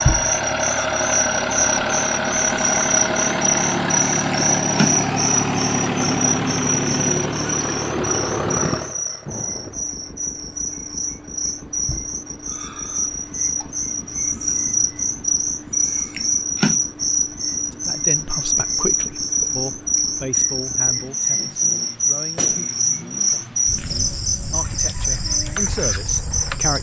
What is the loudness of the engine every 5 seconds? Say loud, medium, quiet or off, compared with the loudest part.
loud, loud, quiet, quiet, quiet, quiet.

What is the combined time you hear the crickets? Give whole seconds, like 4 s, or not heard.
27 s.